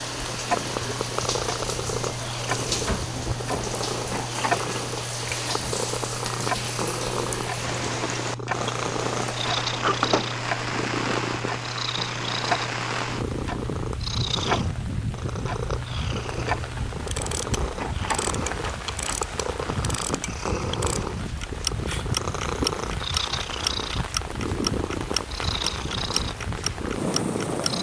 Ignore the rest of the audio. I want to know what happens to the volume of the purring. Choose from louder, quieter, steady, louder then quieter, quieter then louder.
steady.